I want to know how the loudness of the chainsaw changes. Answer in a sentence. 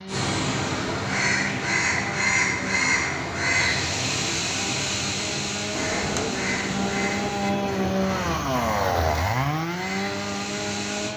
The loudness of the chainsaw goes up.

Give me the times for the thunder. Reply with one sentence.
You can hear the thunder from 5.7 to 8.6 s.